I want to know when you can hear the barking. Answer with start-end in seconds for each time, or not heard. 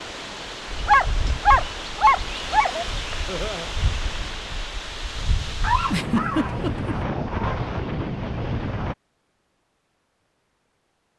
0.8-2.9, 5.6-7.5.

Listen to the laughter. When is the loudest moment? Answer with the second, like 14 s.
6 s.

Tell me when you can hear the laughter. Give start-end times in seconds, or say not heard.
3.2-3.7, 5.9-7.0.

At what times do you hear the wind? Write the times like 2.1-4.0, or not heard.
0.0-8.9.